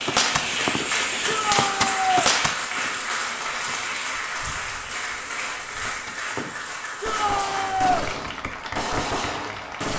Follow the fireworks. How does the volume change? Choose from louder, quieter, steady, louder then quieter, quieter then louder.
quieter then louder.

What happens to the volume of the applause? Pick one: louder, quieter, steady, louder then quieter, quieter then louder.
quieter.